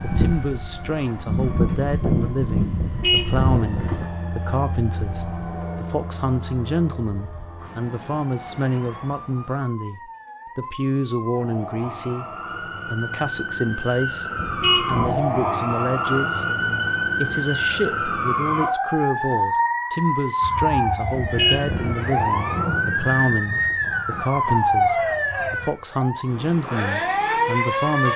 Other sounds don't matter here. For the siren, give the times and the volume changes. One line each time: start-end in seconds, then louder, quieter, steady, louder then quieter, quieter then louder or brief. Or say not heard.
0.0-28.1 quieter then louder.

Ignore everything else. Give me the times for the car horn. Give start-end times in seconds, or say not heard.
2.8-4.0, 14.3-15.2, 21.1-21.9.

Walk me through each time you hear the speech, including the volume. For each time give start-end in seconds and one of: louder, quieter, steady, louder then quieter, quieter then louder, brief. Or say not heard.
0.0-28.1 steady.